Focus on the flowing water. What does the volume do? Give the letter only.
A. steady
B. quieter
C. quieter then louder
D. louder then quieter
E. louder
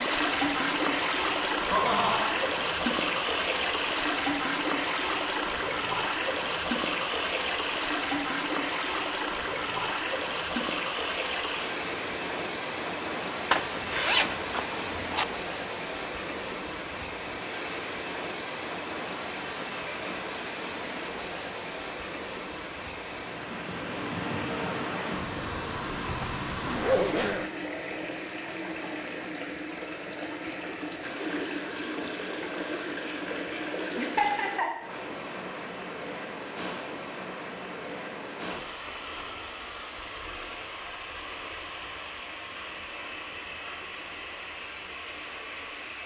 B.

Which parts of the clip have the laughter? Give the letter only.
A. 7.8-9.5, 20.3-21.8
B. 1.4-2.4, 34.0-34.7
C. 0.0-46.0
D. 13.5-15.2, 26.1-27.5
B.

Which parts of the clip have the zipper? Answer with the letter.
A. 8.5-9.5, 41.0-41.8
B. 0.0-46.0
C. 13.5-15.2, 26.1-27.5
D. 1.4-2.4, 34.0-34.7
C.